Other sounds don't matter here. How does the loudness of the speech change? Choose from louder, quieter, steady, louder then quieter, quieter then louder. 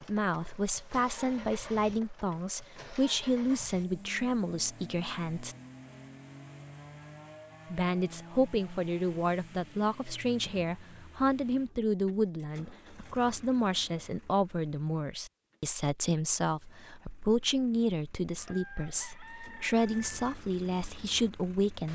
steady.